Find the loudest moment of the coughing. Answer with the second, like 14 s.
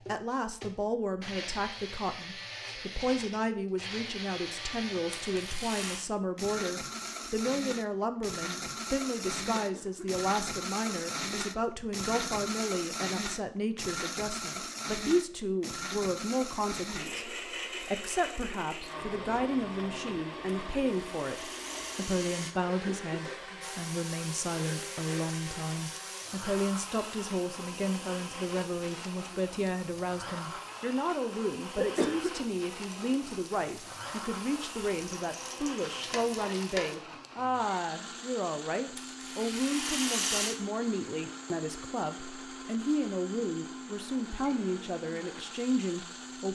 32 s.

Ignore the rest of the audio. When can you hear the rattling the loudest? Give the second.
40 s.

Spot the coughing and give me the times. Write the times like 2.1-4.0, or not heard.
9.6-10.2, 22.6-23.7, 31.8-32.3.